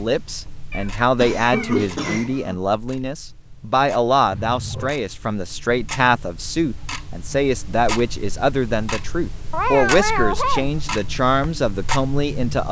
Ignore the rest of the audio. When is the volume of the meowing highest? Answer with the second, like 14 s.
10 s.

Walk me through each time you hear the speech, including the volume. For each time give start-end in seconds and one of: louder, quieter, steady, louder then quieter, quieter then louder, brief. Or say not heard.
0.0-12.6 steady.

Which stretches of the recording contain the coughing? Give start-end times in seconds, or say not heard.
1.1-2.5.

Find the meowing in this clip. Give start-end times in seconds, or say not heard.
0.7-1.9, 4.3-5.0, 9.5-10.7.